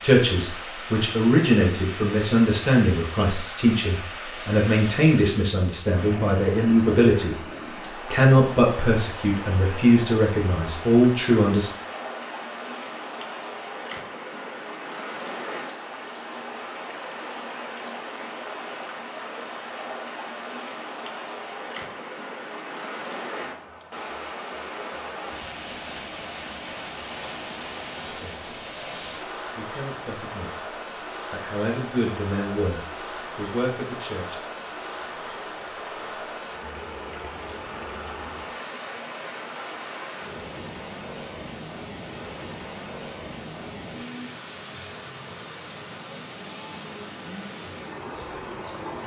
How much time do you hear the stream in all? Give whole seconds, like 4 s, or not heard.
49 s.